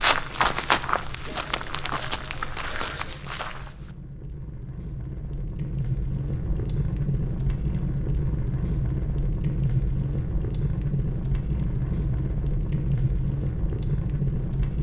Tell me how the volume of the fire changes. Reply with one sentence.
The volume of the fire goes up.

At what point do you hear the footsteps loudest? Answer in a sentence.
The loudest moment of the footsteps is at 1 second.